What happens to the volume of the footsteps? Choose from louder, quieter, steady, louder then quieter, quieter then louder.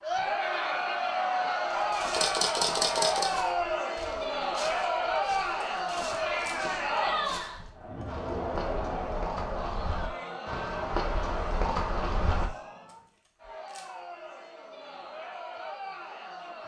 louder.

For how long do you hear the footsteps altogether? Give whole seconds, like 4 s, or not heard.
11 s.